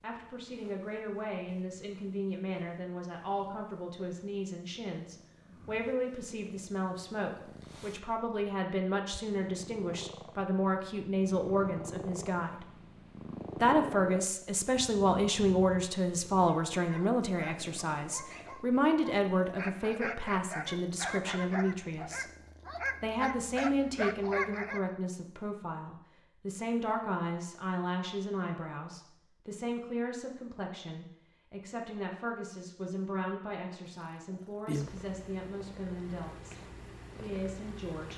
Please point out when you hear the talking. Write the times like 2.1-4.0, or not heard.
0.0-12.7, 13.6-22.3, 23.0-38.1.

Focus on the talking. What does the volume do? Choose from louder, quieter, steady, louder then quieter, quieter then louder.
louder then quieter.